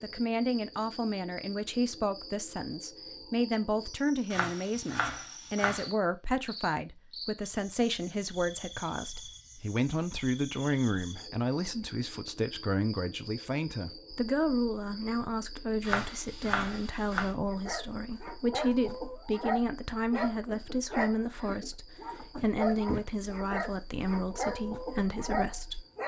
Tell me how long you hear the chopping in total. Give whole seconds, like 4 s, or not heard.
3 s.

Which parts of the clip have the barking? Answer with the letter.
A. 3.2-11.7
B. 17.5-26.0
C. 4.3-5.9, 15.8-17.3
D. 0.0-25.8
B.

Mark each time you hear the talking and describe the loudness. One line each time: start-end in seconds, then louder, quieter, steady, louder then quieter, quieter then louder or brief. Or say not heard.
0.0-25.8 steady.